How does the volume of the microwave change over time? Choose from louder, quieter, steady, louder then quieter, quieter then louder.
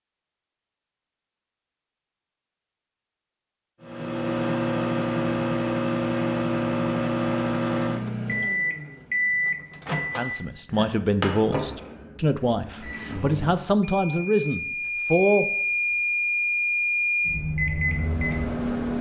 quieter then louder.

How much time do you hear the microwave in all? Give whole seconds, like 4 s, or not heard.
15 s.